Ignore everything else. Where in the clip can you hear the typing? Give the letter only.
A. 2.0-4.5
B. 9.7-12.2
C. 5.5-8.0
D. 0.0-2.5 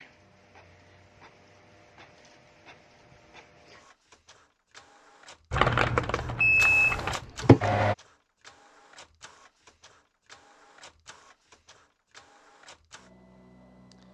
C.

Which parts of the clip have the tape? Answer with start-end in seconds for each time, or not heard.
not heard.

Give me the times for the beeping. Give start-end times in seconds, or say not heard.
6.4-7.6.